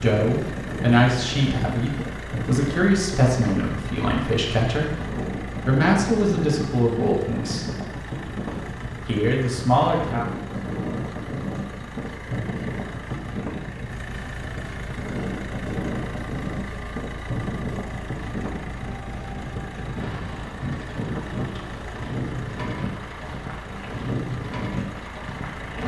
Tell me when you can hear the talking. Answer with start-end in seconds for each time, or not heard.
0.0-7.7, 9.1-10.2.